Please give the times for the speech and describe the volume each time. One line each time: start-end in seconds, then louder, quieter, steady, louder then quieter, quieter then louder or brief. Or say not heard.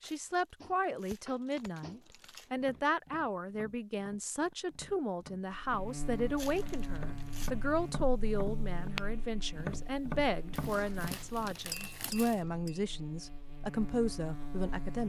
0.0-15.0 steady.